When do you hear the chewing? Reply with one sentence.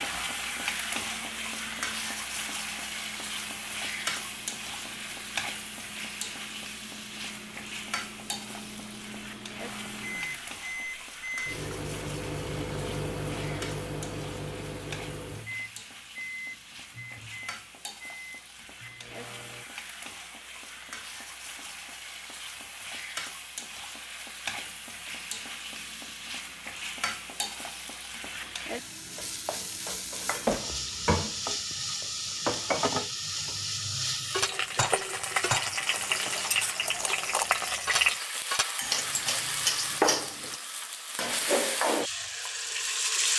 The chewing can't be heard in this clip.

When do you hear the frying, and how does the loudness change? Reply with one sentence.
You can hear the frying from 0.0 to 43.3 s, getting quieter then louder.